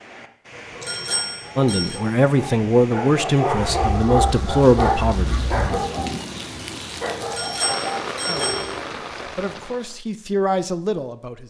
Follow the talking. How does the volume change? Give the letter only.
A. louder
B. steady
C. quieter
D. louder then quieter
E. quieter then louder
E.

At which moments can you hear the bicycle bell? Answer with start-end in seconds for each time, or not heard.
0.8-2.0, 7.3-8.7.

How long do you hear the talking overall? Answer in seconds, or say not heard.
7 s.